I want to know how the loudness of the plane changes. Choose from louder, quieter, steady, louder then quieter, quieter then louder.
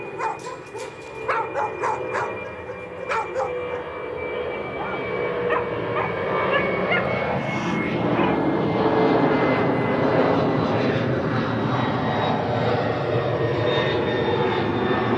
louder.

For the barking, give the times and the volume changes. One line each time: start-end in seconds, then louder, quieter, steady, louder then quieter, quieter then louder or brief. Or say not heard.
0.0-8.4 quieter then louder.